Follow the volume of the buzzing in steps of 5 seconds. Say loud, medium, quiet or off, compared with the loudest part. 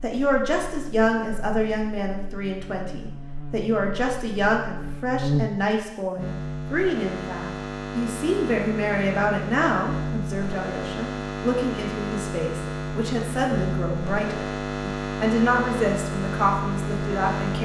quiet, loud, loud, loud.